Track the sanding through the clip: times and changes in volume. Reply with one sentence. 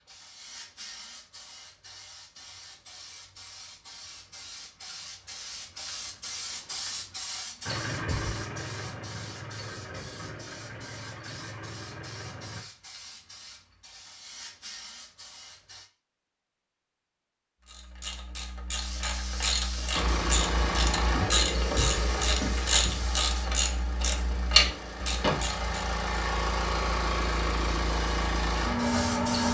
You can't hear the sanding here.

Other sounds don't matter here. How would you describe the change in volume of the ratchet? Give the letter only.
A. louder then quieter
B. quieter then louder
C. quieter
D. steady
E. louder
E.